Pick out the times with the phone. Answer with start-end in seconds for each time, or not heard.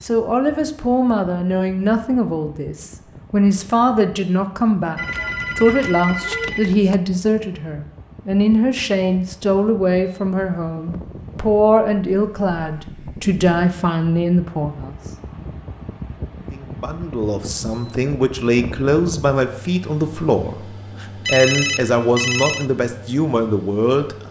5.0-7.0, 21.2-22.6.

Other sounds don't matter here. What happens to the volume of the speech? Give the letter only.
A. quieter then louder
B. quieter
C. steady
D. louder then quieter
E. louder
C.